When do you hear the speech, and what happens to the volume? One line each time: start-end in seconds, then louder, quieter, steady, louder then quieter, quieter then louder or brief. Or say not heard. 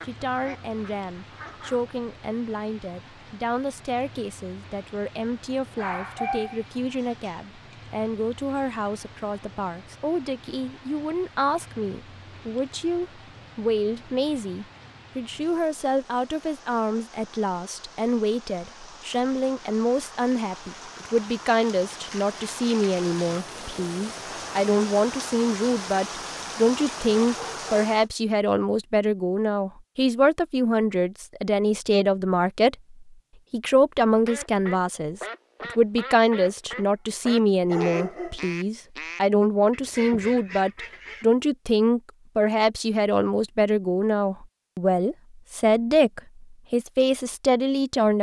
0.0-48.1 louder.